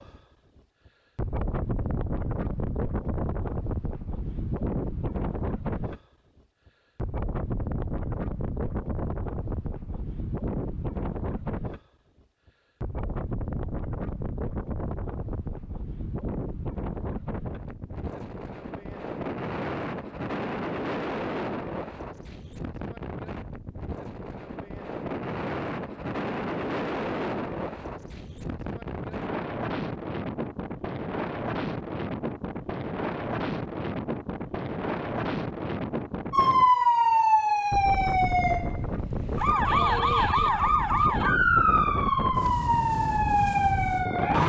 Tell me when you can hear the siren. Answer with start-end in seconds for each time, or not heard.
36.3-44.4.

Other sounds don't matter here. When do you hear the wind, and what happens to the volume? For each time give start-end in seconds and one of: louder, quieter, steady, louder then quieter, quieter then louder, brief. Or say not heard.
0.0-36.7 steady
37.7-44.4 steady.